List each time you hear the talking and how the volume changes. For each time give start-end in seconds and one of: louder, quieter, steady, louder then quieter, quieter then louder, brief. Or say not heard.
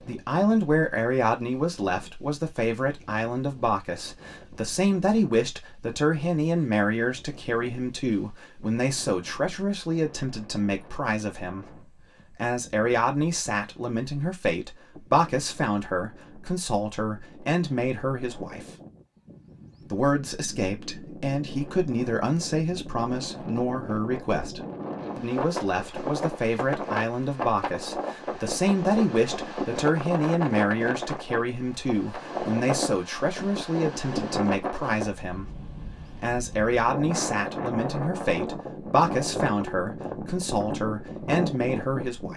0.0-18.8 steady
19.9-42.3 steady.